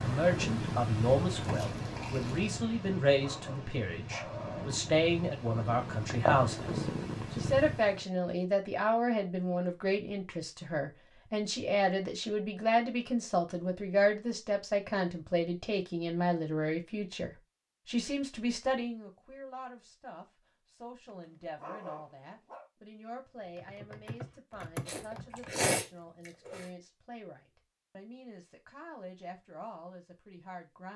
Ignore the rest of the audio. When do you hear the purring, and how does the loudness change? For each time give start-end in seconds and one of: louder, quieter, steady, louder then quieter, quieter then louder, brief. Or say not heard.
0.0-8.1 quieter then louder.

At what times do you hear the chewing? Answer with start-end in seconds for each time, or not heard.
1.2-2.6, 24.9-26.6.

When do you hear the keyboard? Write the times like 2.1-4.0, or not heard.
23.4-25.8.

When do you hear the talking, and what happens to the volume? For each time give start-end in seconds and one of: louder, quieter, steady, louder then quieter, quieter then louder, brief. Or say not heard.
0.0-30.9 quieter.